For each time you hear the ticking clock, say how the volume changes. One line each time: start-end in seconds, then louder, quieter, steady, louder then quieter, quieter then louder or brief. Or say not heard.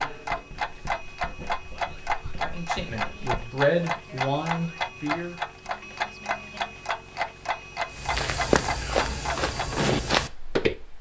0.0-10.9 steady.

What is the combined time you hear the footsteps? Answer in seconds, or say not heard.
3 s.